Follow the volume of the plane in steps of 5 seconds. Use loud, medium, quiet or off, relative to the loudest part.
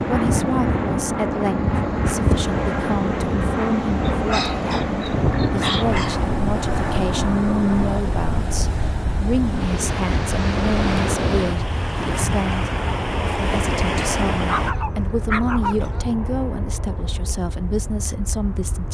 loud, loud, medium, medium.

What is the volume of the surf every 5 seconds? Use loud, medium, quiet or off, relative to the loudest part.
loud, loud, loud, off.